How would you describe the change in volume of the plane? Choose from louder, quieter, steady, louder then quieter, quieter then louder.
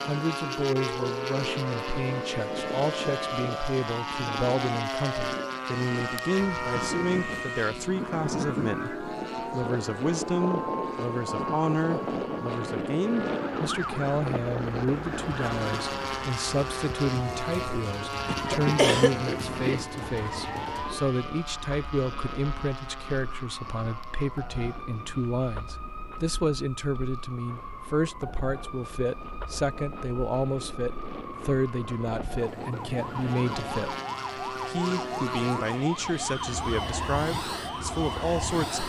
quieter then louder.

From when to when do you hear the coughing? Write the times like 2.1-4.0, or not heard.
18.2-19.9.